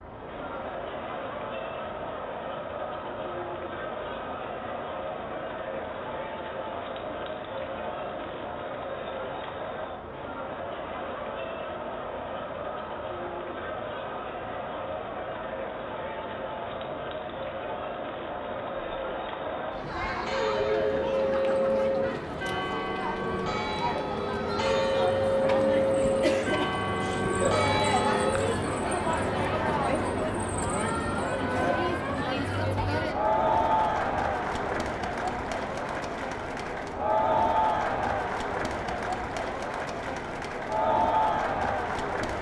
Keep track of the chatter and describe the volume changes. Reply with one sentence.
The volume of the chatter goes up.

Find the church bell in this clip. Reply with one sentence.
The church bell can be heard from 20.2 to 28.3 s.